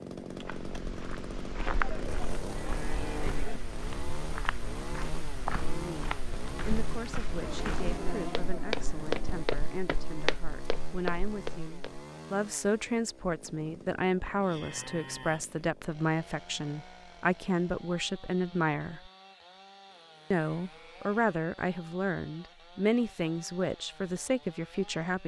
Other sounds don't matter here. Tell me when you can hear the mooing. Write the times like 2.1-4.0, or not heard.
1.6-3.6, 7.4-9.4, 14.4-15.6, 19.9-21.2.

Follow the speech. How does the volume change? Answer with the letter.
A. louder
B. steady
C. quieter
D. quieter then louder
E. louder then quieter
A.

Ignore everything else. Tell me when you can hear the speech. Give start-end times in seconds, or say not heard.
5.5-19.1, 20.3-25.2.